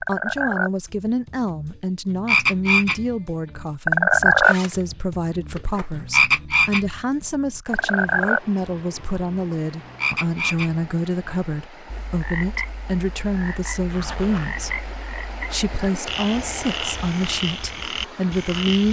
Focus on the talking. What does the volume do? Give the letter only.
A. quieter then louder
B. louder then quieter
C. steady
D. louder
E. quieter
C.